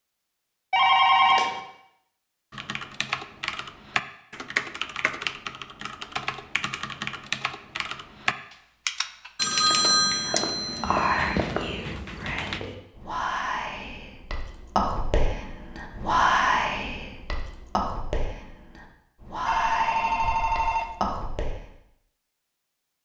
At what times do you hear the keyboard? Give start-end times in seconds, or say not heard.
2.5-12.6.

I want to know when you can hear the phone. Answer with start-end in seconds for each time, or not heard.
0.7-1.6, 9.3-11.7, 19.4-20.9.